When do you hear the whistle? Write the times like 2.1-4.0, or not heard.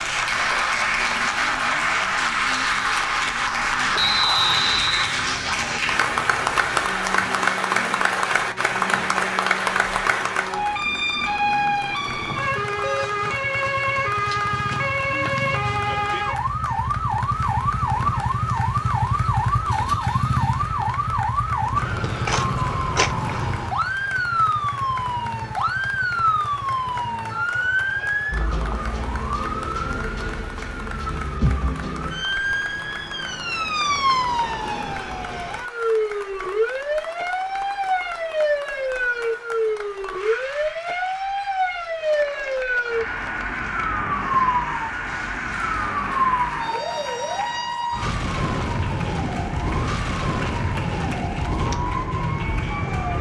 4.0-5.2.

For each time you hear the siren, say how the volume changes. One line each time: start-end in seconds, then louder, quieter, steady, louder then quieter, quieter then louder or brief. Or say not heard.
0.0-53.1 louder.